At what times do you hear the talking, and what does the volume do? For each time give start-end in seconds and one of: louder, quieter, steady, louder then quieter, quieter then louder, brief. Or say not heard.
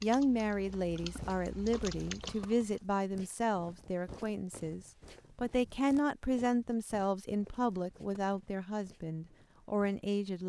0.0-10.4 steady.